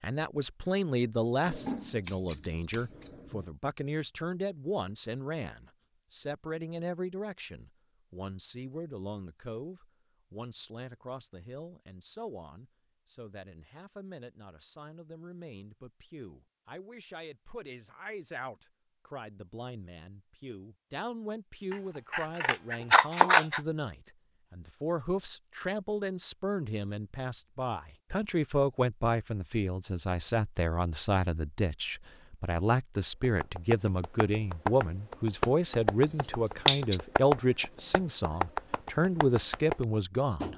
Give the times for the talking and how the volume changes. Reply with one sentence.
The talking can be heard from 0.0 to 40.5 s, getting quieter then louder.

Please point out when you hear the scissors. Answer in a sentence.
The scissors can be heard from 1.4 to 3.4 s, from 21.7 to 23.6 s and from 36.0 to 37.0 s.